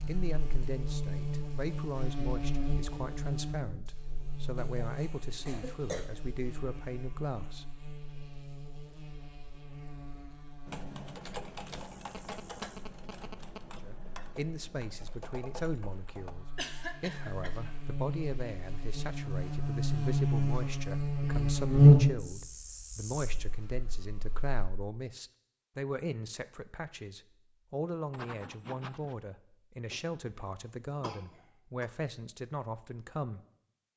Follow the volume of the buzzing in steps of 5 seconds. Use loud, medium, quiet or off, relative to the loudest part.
quiet, quiet, quiet, quiet, loud, off, off.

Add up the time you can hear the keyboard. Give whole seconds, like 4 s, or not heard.
6 s.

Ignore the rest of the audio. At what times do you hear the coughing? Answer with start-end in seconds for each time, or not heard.
4.5-6.1, 16.6-17.8, 29.9-31.9.